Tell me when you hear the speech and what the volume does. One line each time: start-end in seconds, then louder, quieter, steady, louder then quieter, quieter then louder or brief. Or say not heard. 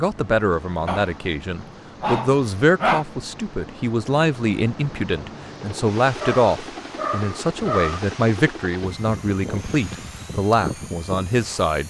0.0-11.8 steady.